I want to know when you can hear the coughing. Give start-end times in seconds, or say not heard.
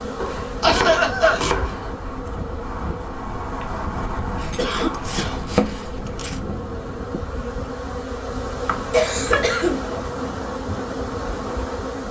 0.6-1.4, 4.5-5.4, 8.9-9.8.